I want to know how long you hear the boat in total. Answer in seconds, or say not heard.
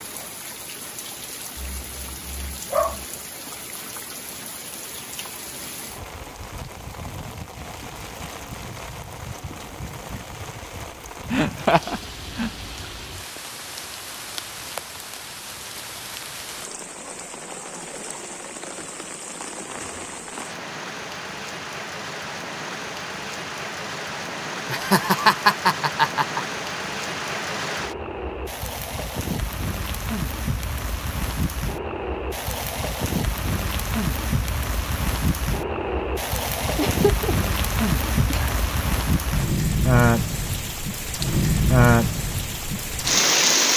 not heard.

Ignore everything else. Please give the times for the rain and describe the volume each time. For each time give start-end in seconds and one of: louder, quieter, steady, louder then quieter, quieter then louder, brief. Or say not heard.
0.0-43.7 louder.